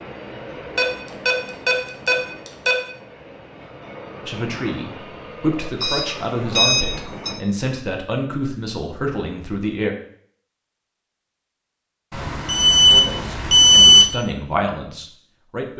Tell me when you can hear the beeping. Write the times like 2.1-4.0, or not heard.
0.8-2.8, 5.8-7.3, 12.1-14.1.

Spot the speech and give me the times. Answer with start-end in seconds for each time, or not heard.
4.2-9.9, 12.8-15.7.